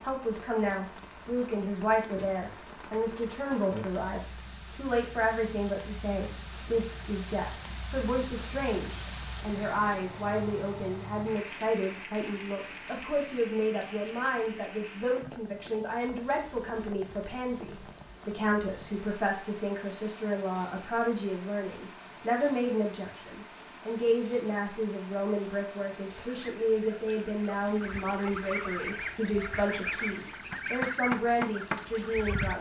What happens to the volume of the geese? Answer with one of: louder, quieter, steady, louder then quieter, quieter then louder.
louder.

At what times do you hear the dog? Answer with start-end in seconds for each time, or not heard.
not heard.